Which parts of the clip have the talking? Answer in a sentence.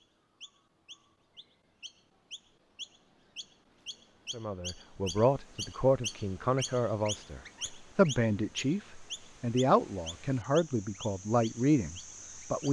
The talking can be heard from 4.3 to 12.6 s.